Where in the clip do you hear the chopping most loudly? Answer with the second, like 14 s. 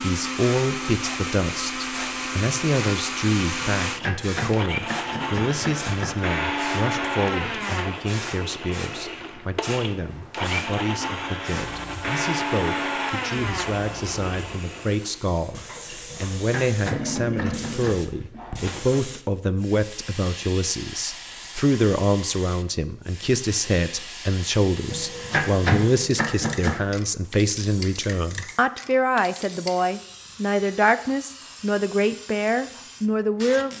26 s.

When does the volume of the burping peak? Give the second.
17 s.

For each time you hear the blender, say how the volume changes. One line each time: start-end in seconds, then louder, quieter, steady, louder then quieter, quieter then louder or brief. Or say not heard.
0.0-15.2 steady.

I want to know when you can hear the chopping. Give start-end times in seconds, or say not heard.
3.8-6.3, 16.1-18.1, 24.9-26.8.